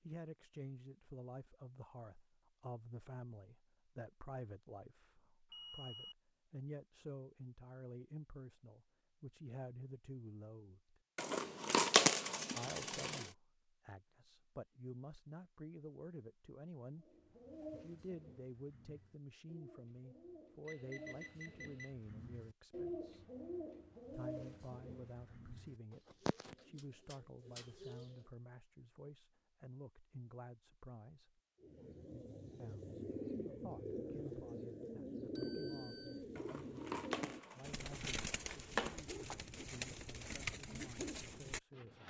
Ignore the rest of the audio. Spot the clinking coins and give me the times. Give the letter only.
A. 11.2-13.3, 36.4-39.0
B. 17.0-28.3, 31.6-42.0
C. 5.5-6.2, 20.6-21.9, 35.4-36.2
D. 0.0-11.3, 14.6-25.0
A.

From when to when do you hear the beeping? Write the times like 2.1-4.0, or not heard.
5.5-6.2, 20.6-21.9, 35.4-36.2.